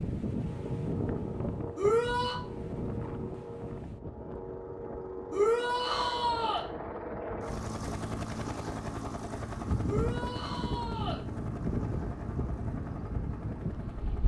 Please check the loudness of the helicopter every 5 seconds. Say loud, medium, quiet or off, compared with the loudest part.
medium, loud, medium.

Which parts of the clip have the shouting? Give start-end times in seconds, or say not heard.
1.8-2.4, 5.3-6.7, 9.8-11.2.